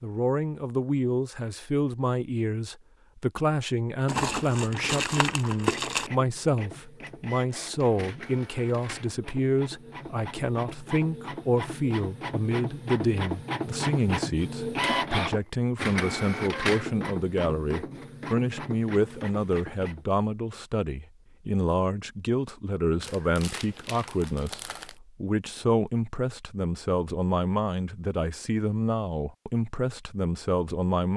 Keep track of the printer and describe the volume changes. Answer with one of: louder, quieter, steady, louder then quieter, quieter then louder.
louder then quieter.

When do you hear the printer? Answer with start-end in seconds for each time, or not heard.
5.6-20.1.